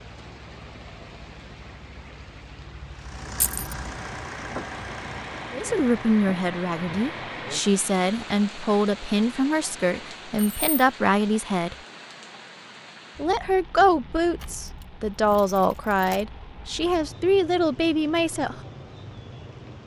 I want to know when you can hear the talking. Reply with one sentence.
You can hear the talking from 5.5 to 11.8 s and from 13.2 to 18.6 s.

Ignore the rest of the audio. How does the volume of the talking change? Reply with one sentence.
The volume of the talking stays about the same.